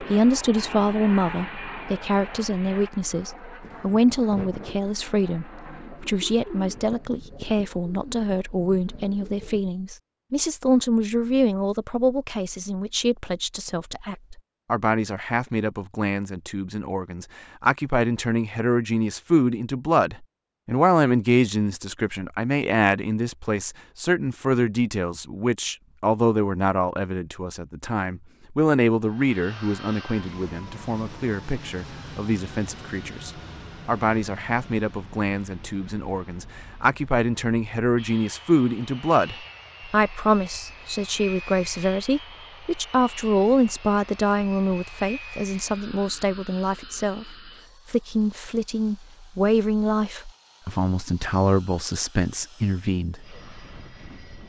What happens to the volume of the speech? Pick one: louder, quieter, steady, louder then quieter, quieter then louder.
steady.